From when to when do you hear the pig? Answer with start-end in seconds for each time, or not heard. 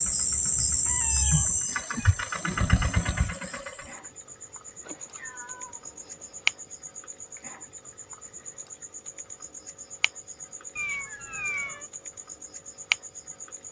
not heard.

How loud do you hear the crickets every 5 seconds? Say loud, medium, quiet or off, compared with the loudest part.
loud, medium, medium.